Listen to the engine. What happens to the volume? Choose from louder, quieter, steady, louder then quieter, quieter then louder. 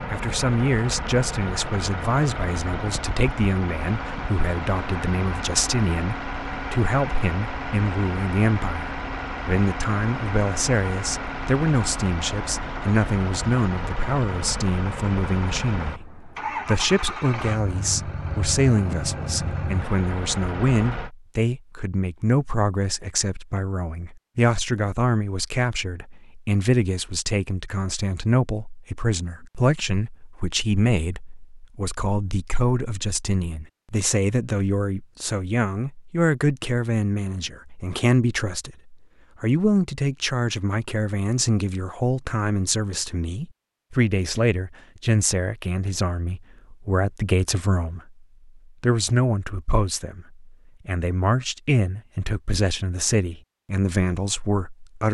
steady.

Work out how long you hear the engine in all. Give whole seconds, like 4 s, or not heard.
21 s.